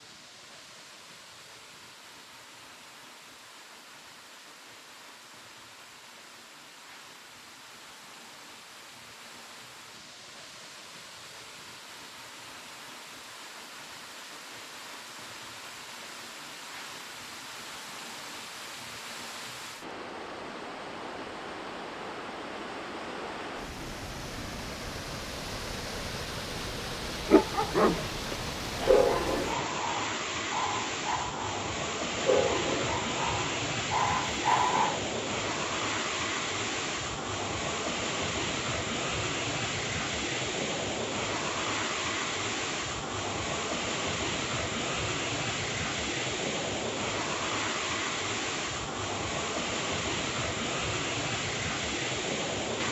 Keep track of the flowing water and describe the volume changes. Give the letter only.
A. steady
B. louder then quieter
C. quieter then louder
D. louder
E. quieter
D.